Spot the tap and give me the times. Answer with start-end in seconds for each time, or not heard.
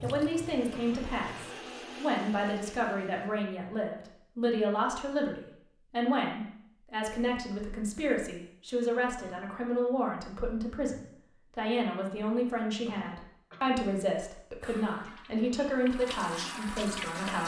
0.0-1.5, 14.6-17.4.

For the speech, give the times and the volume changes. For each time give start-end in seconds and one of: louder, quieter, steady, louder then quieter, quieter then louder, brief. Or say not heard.
0.0-17.4 steady.